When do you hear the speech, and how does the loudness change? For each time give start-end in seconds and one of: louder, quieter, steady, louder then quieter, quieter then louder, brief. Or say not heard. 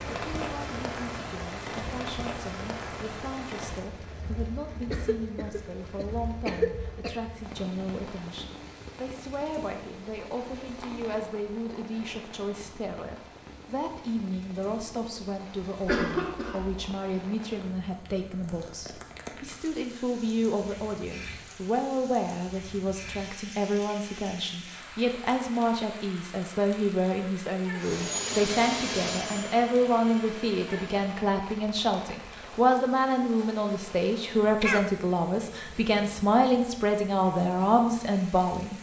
0.2-38.7 louder.